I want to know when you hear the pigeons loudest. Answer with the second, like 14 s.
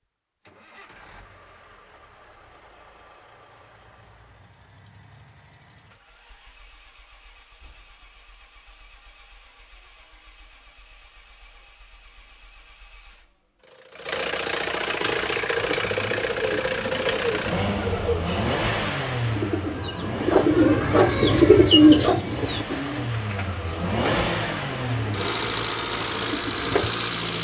22 s.